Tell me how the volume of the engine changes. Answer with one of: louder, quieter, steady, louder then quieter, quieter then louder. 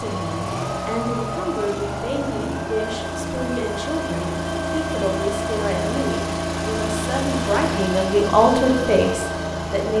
steady.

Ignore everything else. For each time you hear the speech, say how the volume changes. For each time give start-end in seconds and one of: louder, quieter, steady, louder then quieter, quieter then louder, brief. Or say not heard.
0.0-9.9 louder.